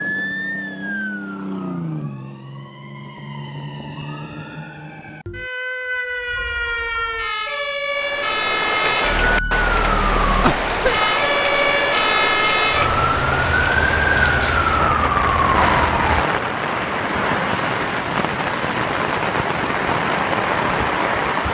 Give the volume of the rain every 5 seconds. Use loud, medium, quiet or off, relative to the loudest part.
off, loud, loud, loud, loud.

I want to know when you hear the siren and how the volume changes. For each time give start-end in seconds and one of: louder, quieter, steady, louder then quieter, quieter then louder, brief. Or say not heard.
0.0-16.2 louder.